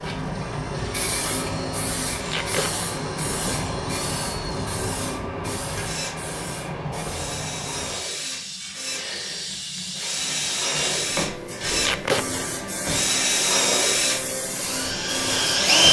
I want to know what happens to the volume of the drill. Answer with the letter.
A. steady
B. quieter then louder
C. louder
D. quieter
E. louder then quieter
C.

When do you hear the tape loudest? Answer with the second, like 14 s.
12 s.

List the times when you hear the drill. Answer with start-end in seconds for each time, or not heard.
0.0-15.8.